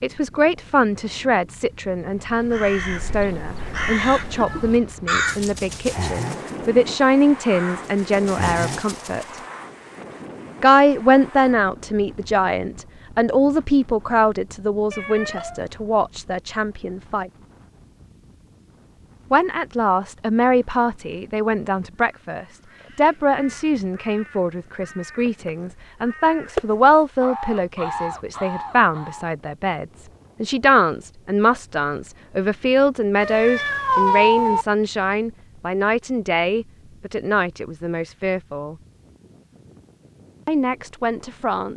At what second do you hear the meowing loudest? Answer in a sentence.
The loudest moment of the meowing is at 34 seconds.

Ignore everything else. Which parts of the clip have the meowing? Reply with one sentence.
The meowing can be heard from 4.3 to 4.8 s, from 14.9 to 15.7 s and from 33.2 to 34.6 s.